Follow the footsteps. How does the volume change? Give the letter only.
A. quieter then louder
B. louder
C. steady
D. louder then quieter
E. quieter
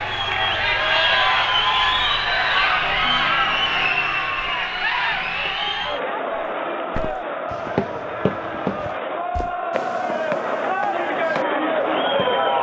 E.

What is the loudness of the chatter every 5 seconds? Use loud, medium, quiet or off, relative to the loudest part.
loud, medium, loud.